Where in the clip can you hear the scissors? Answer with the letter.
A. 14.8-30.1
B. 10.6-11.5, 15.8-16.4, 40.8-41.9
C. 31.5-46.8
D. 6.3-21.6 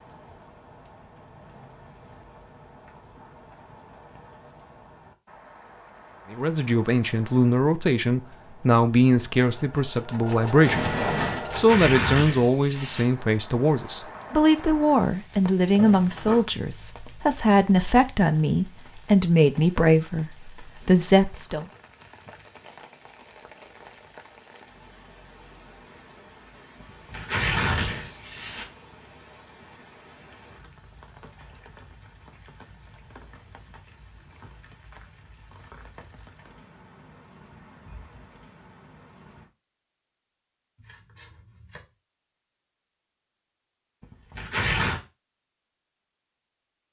B.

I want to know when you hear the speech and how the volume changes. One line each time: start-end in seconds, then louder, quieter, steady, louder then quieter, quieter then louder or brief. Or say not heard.
6.3-21.6 steady.